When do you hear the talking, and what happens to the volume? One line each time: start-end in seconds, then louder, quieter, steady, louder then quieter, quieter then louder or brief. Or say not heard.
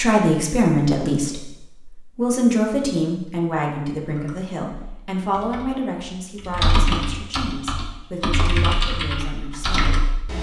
0.0-10.3 quieter.